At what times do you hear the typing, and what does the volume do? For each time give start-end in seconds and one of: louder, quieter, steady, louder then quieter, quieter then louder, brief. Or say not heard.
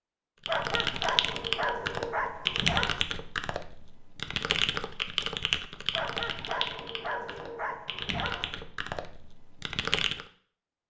0.5-10.2 quieter.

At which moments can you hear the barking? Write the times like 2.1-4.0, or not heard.
0.5-3.0, 5.9-8.6.